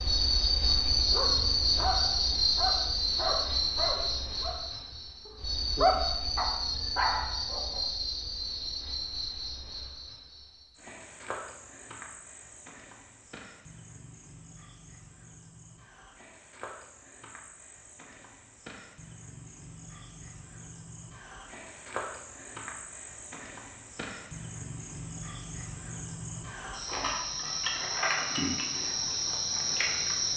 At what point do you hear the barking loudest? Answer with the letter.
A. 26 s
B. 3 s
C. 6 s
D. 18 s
C.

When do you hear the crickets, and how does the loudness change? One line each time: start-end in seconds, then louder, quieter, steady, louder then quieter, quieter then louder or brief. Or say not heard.
0.0-30.3 quieter then louder.